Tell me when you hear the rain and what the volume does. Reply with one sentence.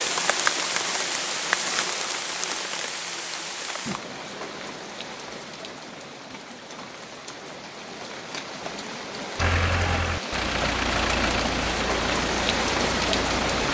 The rain can be heard from 0.0 to 13.6 s, getting quieter then louder.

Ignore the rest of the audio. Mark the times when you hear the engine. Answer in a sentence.
The engine can be heard from 9.3 to 13.6 s.